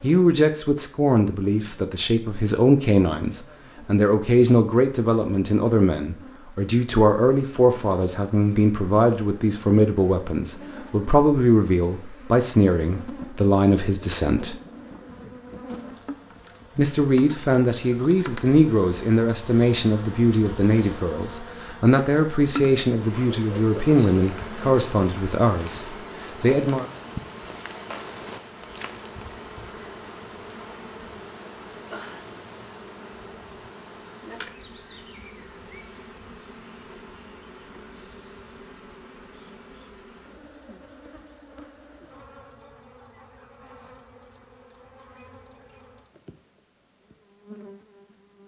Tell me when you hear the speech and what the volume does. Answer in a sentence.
You can hear the speech from 0.0 to 14.6 s, at a steady volume; and from 16.8 to 26.9 s, at a steady volume.